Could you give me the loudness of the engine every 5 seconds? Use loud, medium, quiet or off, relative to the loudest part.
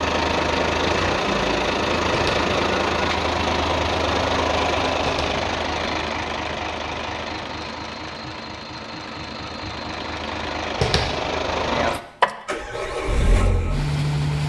loud, medium, loud.